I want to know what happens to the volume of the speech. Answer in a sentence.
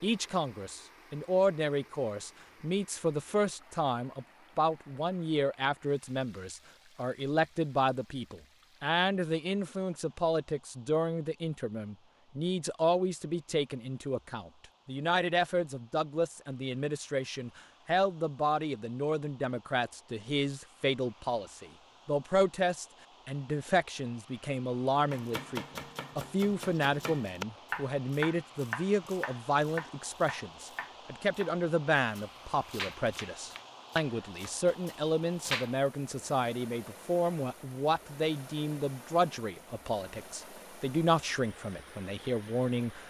The loudness of the speech stays about the same.